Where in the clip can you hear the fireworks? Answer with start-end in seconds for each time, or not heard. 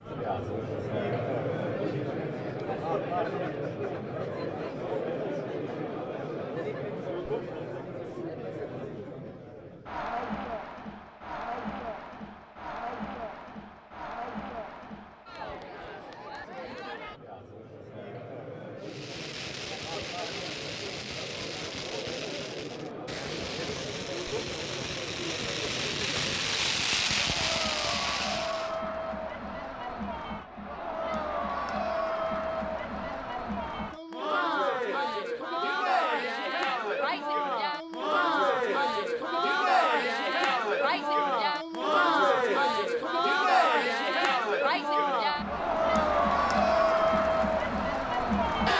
18.8-28.8.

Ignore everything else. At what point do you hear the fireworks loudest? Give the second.
27 s.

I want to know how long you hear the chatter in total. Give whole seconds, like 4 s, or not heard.
49 s.